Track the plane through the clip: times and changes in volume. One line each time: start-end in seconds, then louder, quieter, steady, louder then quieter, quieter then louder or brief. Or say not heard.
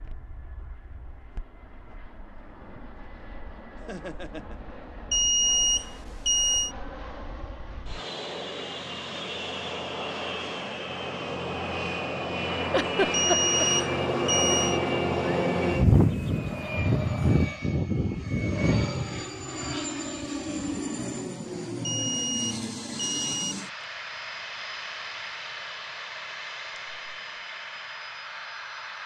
0.0-29.0 louder then quieter.